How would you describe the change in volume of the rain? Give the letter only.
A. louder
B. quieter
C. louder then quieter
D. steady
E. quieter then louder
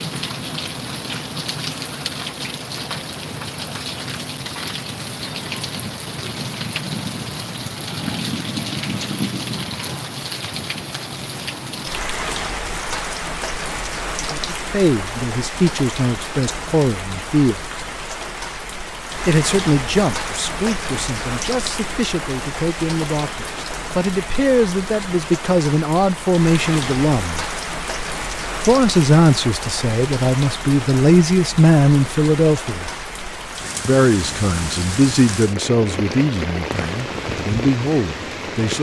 D.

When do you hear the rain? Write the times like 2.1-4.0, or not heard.
0.0-38.7.